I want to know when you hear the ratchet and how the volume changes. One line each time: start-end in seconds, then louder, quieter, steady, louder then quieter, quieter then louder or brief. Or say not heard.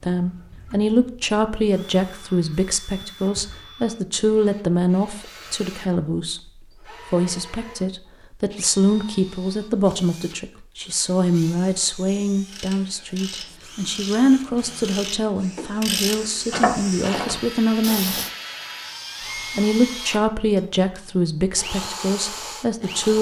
12.4-18.3 louder then quieter.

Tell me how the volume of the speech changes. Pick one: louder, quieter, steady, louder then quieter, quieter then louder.
steady.